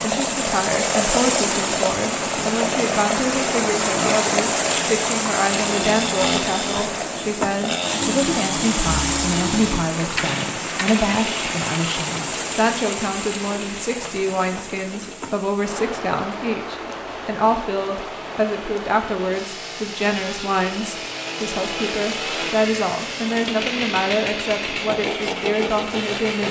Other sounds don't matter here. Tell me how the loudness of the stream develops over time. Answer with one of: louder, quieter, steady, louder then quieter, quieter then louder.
quieter.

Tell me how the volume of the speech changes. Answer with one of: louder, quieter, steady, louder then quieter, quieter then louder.
steady.